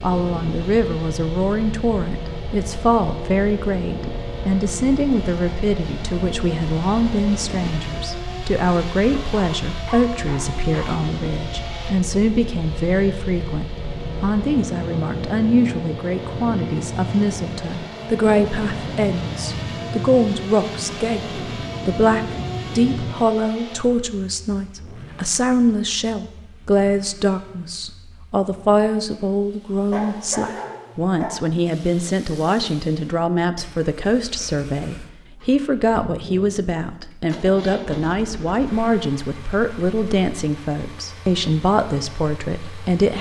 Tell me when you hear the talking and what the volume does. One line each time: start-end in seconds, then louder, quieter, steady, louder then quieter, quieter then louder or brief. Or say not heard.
0.0-43.1 steady.